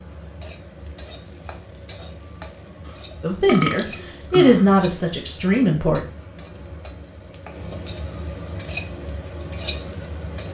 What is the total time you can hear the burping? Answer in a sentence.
The burping can be heard for 2 seconds in total.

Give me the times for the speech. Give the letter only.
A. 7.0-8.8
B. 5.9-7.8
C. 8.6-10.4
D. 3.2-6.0
D.